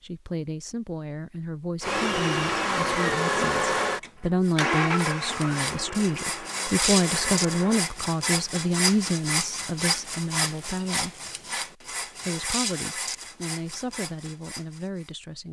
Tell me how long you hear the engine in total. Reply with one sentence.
The engine can be heard for 6 seconds in total.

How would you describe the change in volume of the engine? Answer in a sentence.
The loudness of the engine goes down.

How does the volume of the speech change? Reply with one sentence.
The loudness of the speech goes up, then down.